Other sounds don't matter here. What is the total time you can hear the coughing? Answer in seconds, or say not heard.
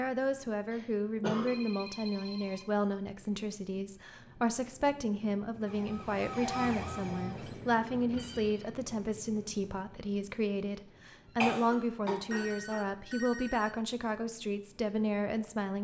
2 s.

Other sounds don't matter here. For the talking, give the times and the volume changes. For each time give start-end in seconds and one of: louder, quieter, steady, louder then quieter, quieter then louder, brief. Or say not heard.
0.0-15.7 steady.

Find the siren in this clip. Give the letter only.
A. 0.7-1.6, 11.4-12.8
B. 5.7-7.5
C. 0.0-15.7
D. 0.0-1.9
B.